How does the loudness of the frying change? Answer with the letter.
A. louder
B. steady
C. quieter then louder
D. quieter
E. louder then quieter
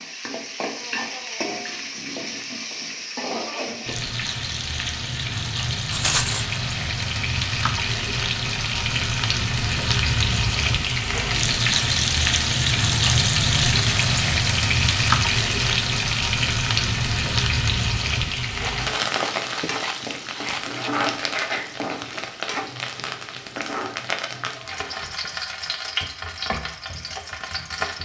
E.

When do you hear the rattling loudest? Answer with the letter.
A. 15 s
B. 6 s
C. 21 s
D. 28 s
B.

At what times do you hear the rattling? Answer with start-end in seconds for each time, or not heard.
5.9-6.5, 18.6-20.9.